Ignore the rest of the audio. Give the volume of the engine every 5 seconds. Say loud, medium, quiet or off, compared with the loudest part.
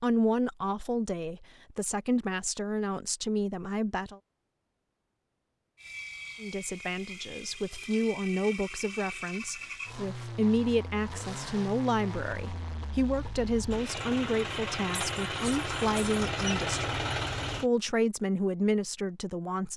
off, medium, medium, loud.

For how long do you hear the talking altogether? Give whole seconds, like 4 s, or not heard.
17 s.